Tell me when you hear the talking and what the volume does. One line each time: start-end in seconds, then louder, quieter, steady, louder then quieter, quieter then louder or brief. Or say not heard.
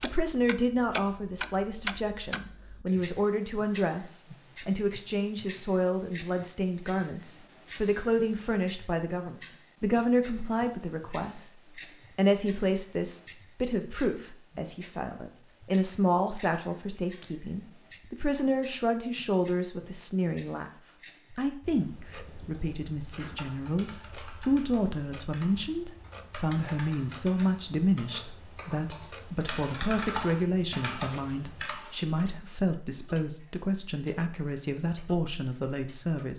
0.0-11.5 steady
12.2-20.7 quieter then louder
21.3-36.3 steady.